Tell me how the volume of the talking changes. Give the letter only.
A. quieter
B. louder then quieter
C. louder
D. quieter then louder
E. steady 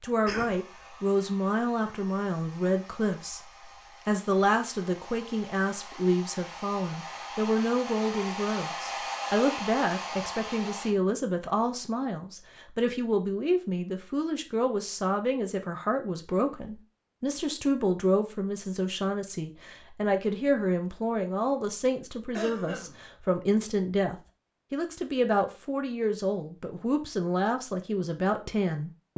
E.